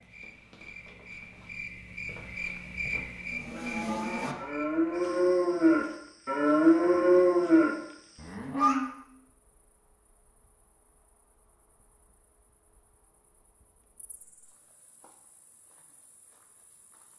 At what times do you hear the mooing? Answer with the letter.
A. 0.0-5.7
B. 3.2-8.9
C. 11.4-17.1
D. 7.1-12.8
B.